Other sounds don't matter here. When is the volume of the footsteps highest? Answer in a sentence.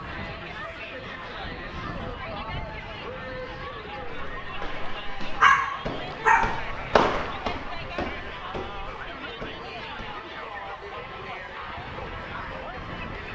The loudest moment of the footsteps is at 7 seconds.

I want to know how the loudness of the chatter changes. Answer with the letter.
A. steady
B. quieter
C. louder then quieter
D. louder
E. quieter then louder
A.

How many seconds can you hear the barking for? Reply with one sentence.
The barking can be heard for 2 seconds in total.